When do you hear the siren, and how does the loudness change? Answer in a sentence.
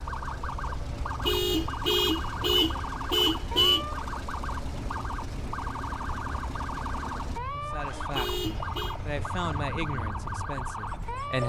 You can hear the siren from 0.0 to 11.4 s, at a steady volume.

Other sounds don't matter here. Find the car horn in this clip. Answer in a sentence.
You can hear the car horn from 1.2 to 3.9 s and from 8.1 to 8.9 s.